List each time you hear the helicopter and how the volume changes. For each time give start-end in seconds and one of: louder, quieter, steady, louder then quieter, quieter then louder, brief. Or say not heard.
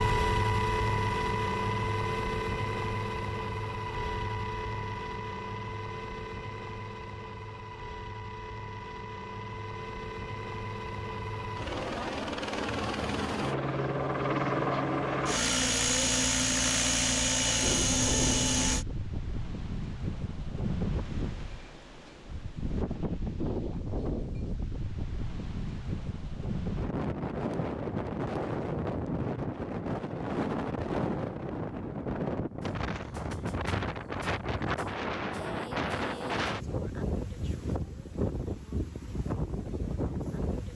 0.0-18.9 quieter then louder.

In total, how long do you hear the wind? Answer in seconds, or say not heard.
23 s.